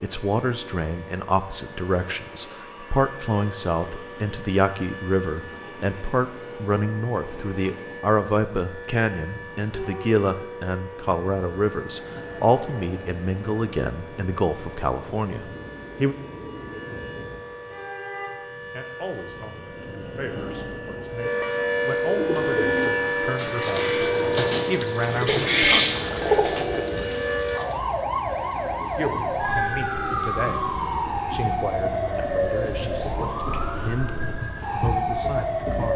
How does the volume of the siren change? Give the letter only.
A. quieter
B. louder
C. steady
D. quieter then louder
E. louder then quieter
B.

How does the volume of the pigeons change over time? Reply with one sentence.
The volume of the pigeons goes up, then down.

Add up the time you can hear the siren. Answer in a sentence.
You can hear the siren for 36 seconds altogether.